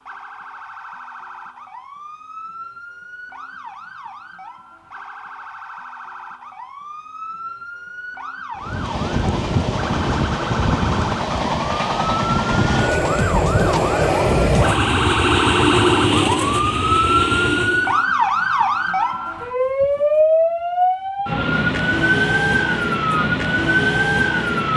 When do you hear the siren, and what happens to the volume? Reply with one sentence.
The siren can be heard from 0.0 to 24.7 s, getting louder.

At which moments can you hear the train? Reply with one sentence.
You can hear the train from 8.6 to 18.1 s.